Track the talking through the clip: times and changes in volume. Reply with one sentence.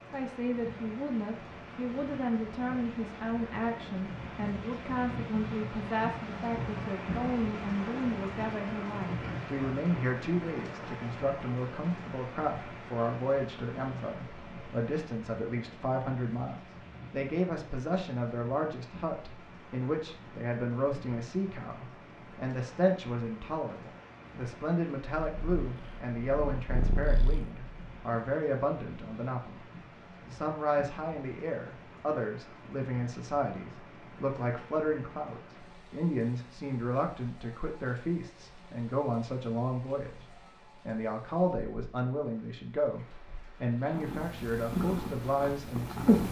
You can hear the talking from 0.1 to 29.7 s, at a steady volume; and from 30.3 to 46.1 s, at a steady volume.